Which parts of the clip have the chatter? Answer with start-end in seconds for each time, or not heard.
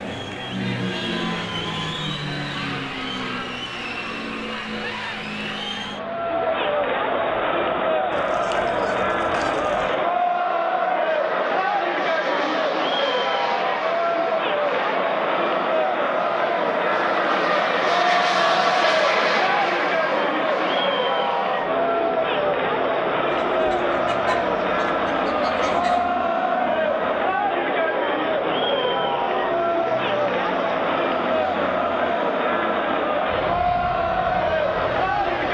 0.0-35.4.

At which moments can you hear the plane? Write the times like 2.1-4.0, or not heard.
0.0-35.4.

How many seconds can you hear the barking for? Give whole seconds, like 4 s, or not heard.
not heard.